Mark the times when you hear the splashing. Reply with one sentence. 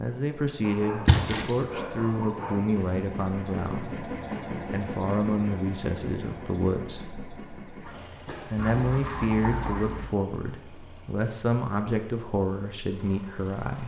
The splashing can be heard from 1.1 to 1.6 s and from 7.8 to 9.8 s.